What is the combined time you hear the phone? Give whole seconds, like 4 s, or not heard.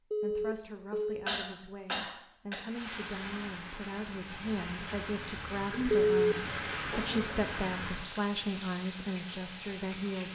2 s.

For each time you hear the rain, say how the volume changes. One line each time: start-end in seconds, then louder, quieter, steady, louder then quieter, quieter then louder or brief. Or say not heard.
2.6-10.2 louder.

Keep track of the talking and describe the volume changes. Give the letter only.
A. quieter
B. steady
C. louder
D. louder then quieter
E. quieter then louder
C.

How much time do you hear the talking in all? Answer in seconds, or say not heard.
10 s.